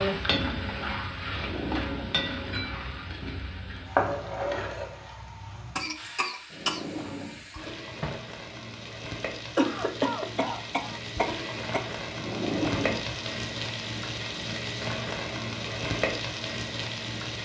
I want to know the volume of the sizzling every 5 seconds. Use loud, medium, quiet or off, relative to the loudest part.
loud, medium, loud, loud.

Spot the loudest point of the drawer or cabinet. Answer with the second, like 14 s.
13 s.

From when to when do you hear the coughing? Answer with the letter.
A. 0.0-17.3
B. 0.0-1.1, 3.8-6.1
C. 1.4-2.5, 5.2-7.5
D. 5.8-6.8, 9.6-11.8
D.